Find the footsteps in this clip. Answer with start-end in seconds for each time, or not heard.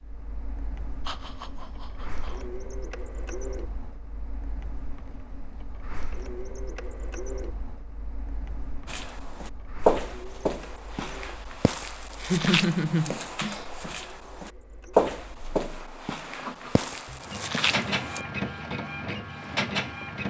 8.8-18.2.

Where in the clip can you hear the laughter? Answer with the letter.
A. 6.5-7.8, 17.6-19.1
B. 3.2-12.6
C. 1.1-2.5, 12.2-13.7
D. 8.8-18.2
C.